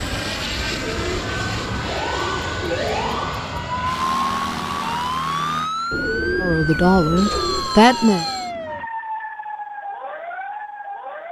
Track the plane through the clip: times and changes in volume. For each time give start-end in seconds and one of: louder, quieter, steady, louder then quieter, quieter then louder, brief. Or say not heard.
0.0-8.9 quieter.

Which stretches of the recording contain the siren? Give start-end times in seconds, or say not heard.
0.0-11.2.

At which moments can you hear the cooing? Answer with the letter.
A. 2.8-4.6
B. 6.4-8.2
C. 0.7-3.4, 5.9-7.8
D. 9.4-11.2
C.